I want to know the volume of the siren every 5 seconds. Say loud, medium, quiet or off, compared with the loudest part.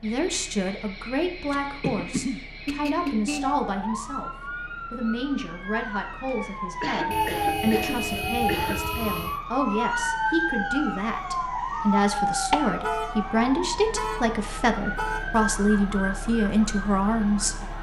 medium, loud, loud, medium.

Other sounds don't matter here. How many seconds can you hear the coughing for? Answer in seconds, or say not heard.
4 s.